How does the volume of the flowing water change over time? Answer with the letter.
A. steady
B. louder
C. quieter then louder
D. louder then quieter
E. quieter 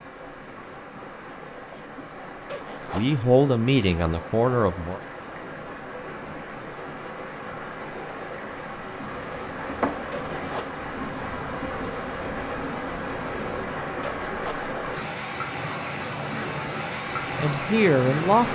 B.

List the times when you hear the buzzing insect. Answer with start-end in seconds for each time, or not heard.
9.0-13.9.